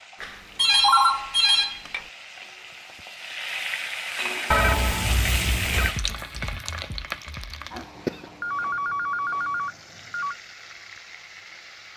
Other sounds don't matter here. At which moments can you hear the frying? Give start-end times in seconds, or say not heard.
0.0-11.9.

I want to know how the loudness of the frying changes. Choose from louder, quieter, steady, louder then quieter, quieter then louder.
louder then quieter.